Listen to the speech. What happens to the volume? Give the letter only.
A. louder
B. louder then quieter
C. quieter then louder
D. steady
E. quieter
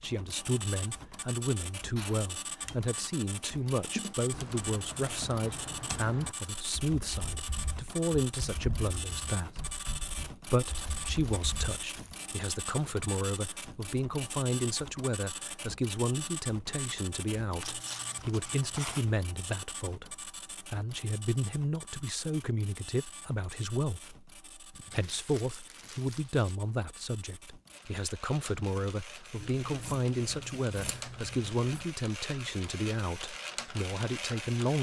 D.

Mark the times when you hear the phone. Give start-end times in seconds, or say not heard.
not heard.